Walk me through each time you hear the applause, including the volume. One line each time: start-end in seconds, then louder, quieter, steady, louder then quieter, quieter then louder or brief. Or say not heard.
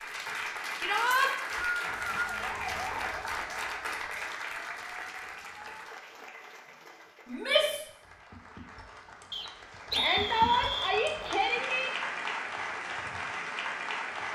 0.0-14.2 quieter then louder.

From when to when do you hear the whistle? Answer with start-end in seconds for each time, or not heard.
1.1-2.4, 9.3-10.9.